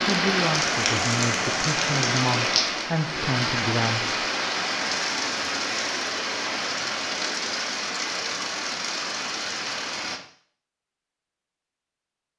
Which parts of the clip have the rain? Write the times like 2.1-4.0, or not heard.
0.0-10.2.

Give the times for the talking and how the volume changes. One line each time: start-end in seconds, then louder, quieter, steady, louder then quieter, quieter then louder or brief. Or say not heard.
0.0-4.2 steady.